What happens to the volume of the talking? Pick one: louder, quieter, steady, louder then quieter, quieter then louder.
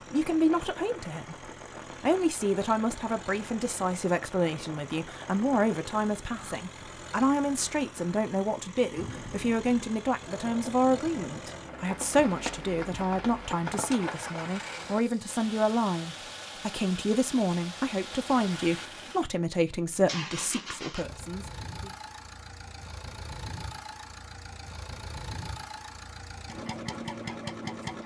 steady.